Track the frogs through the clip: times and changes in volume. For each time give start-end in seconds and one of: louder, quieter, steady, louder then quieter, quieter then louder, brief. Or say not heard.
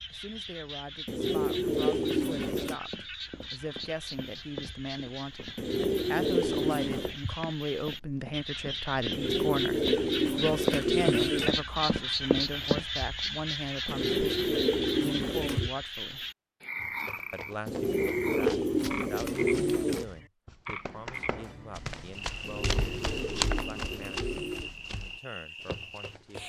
0.0-26.4 louder then quieter.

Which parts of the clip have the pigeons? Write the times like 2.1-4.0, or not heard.
1.1-2.8, 5.5-7.2, 9.1-11.5, 13.8-15.7, 17.6-20.1, 22.4-24.7.